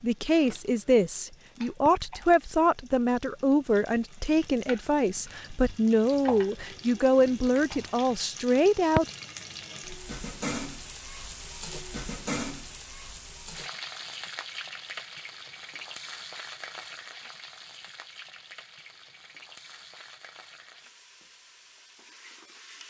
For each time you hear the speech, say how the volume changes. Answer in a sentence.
You can hear the speech from 0.0 to 9.1 s, at a steady volume.